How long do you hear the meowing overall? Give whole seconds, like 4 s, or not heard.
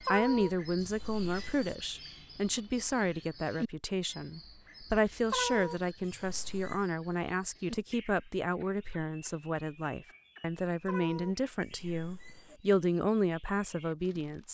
5 s.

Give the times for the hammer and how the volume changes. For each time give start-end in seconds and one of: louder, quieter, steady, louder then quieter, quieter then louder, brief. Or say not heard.
not heard.